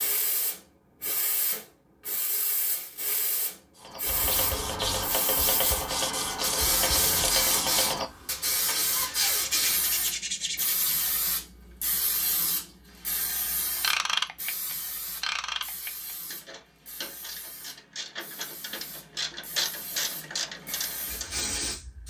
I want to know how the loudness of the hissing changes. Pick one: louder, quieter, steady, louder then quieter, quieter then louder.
louder then quieter.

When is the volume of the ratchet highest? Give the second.
14 s.